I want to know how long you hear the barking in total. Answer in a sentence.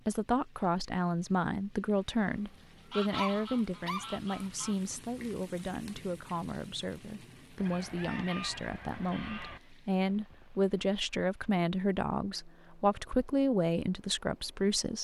You can hear the barking for 2 seconds altogether.